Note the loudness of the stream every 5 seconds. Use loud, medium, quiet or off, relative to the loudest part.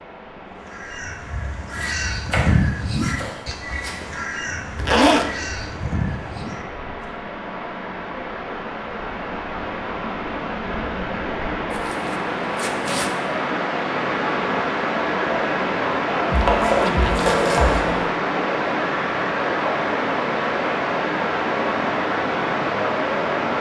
quiet, medium, loud, loud, loud.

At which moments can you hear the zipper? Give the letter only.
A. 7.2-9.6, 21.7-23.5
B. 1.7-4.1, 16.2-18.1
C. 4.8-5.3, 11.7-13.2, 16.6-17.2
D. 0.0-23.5
C.